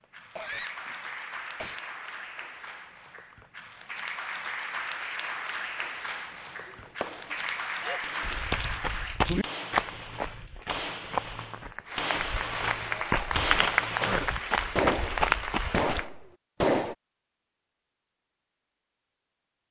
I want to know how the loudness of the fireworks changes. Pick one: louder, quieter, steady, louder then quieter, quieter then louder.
louder.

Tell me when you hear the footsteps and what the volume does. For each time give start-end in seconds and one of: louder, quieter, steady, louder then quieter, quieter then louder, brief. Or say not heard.
8.2-16.1 quieter then louder.